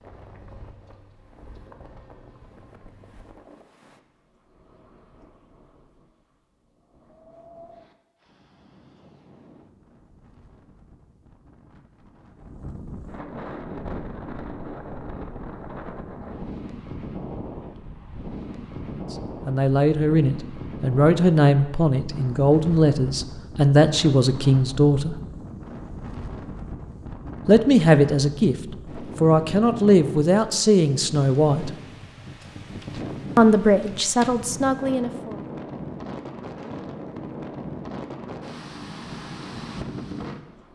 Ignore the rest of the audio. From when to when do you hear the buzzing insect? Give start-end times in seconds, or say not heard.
0.0-3.4.